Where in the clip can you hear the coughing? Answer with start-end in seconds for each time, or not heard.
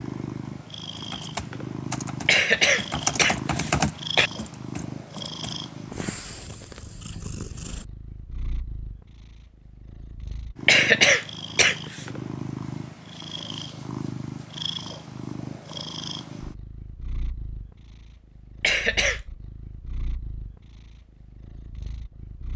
2.2-4.3, 10.7-12.1, 18.6-19.2.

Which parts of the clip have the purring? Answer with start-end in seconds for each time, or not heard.
0.0-22.5.